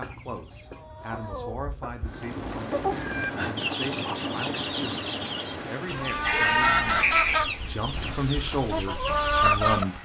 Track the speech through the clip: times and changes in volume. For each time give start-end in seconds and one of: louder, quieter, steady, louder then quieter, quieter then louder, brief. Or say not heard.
0.0-9.9 louder.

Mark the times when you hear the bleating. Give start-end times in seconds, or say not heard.
6.2-7.3.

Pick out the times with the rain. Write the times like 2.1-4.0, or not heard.
2.0-9.9.